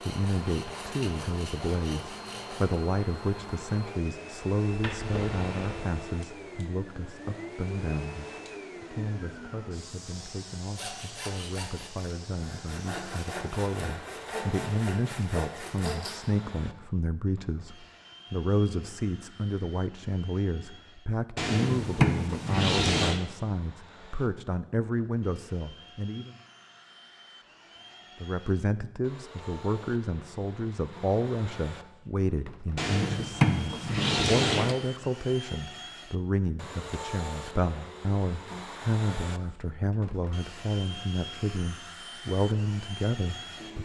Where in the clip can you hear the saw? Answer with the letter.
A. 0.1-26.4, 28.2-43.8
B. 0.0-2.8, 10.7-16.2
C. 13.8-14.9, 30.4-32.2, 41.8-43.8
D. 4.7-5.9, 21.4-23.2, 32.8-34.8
B.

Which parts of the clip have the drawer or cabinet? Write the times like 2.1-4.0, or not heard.
4.7-5.9, 21.4-23.2, 32.8-34.8.